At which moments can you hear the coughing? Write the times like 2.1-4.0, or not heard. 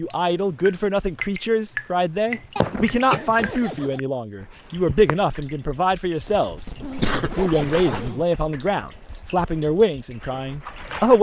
2.5-3.6, 6.5-8.4.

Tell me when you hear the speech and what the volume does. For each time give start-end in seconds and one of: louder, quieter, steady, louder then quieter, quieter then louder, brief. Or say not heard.
0.0-11.1 steady.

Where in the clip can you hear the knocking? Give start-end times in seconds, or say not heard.
not heard.